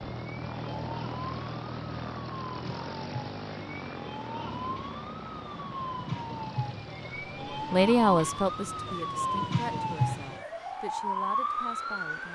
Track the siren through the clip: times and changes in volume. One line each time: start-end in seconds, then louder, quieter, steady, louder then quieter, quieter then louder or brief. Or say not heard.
0.1-12.2 louder.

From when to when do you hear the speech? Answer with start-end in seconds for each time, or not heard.
7.7-12.2.